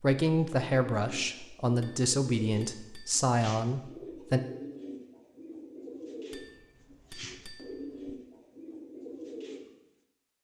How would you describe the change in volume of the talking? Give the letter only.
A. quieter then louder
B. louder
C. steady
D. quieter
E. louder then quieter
C.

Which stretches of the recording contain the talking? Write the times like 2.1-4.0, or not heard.
0.0-4.4.